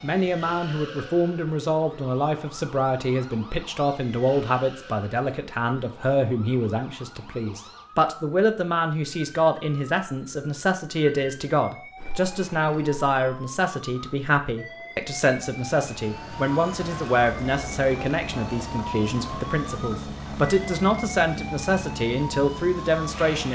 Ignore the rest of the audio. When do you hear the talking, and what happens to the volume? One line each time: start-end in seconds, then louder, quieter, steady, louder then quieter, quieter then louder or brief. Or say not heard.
0.0-23.5 steady.